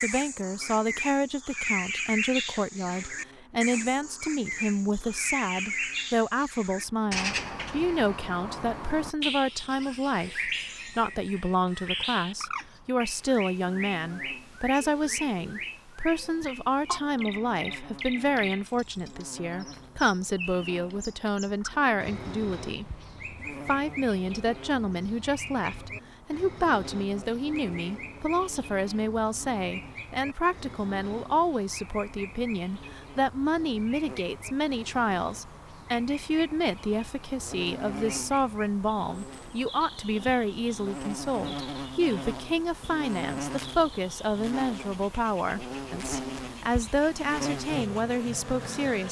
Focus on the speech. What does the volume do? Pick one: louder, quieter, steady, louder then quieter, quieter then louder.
steady.